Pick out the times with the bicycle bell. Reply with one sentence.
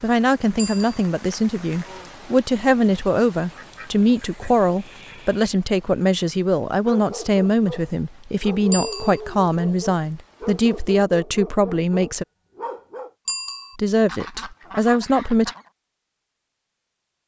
You can hear the bicycle bell from 0.6 to 1.1 s, from 8.7 to 9.2 s and from 13.2 to 13.8 s.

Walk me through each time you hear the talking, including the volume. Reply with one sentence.
The talking can be heard from 0.0 to 12.2 s, at a steady volume; and briefly from 13.8 to 15.5 s.